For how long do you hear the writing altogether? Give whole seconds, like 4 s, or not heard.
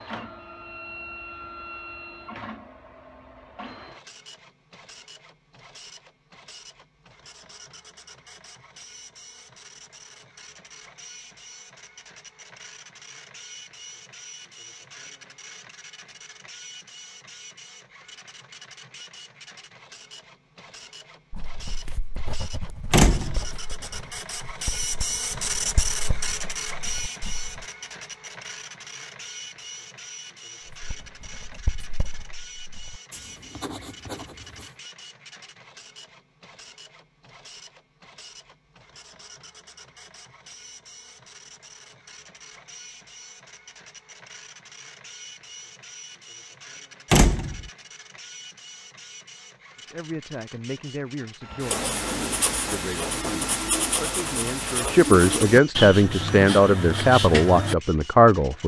17 s.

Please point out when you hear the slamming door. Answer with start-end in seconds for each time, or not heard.
22.9-23.5, 47.1-47.6.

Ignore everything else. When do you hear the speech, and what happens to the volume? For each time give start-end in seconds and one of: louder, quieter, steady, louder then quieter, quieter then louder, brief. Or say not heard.
49.9-51.9 brief
52.6-58.6 louder.